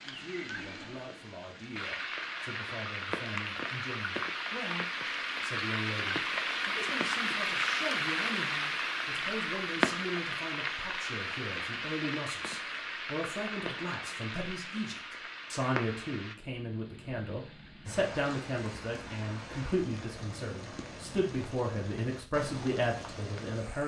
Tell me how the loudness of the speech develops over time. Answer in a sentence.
The volume of the speech goes up.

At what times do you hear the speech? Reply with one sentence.
You can hear the speech from 0.1 to 23.8 s.